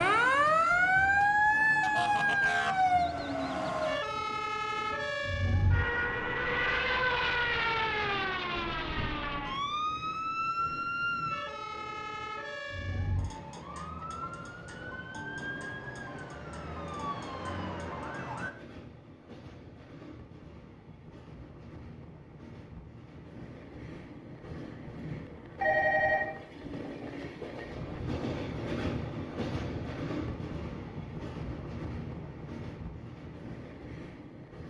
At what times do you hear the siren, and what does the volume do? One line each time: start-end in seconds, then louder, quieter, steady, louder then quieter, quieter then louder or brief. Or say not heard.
0.0-18.5 quieter.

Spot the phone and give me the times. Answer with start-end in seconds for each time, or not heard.
25.6-26.2.